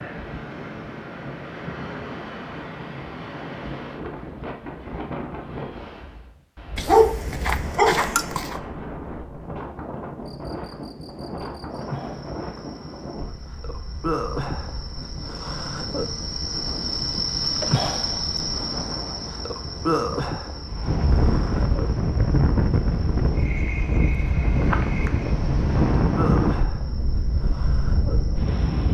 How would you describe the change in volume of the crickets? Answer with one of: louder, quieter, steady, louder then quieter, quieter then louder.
louder then quieter.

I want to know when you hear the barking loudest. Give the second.
7 s.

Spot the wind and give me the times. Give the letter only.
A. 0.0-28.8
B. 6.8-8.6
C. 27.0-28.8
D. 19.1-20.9
A.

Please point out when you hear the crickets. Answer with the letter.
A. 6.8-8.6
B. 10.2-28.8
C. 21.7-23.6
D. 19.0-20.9
B.